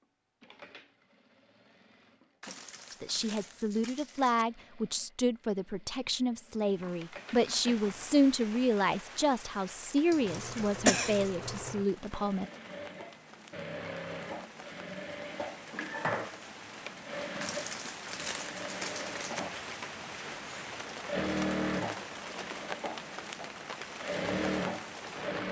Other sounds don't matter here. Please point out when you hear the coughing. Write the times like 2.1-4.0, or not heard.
10.1-11.2.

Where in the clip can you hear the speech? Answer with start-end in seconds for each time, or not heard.
2.9-12.4.